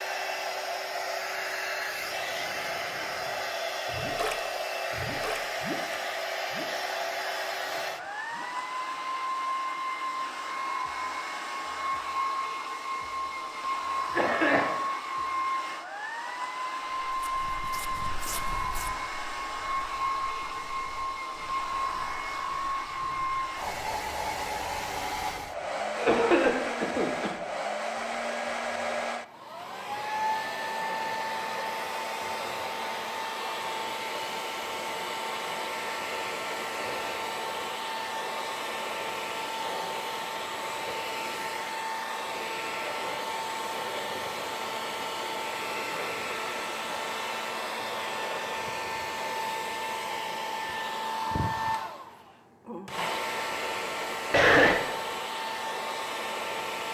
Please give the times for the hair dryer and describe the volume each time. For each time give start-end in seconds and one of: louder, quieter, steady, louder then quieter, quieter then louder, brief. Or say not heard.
0.0-56.8 steady.